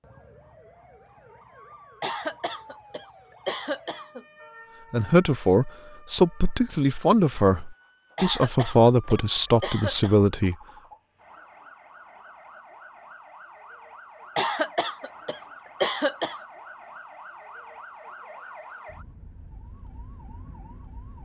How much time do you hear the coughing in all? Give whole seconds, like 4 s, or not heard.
6 s.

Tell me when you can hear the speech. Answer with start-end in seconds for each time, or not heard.
4.9-10.6.